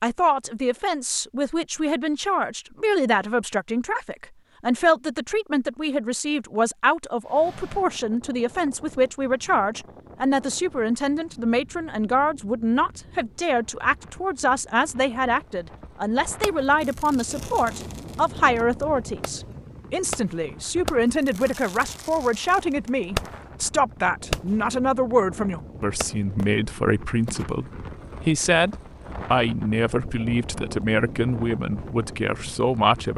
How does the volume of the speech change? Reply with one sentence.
The volume of the speech stays about the same.